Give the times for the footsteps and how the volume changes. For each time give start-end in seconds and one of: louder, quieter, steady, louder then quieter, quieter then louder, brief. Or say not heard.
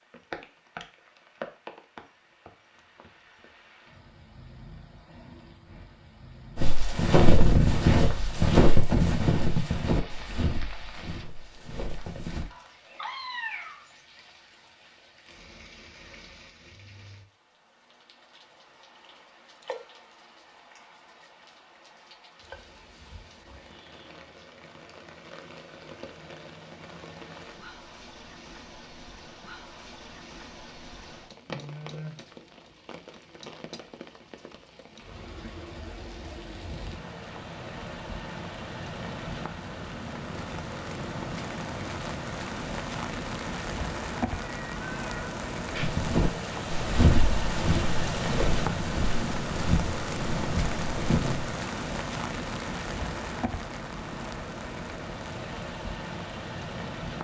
6.5-12.4 quieter
45.8-51.5 quieter.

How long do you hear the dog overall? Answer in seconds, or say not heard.
not heard.